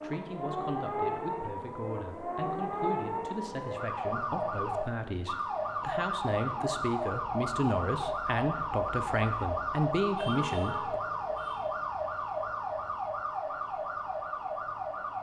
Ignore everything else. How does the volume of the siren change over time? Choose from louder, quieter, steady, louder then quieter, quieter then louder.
steady.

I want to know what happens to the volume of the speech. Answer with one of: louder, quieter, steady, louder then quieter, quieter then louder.
louder.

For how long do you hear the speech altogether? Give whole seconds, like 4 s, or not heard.
11 s.